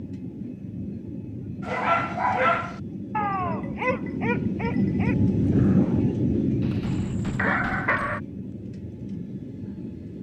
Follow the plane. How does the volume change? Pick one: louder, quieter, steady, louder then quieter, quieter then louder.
louder then quieter.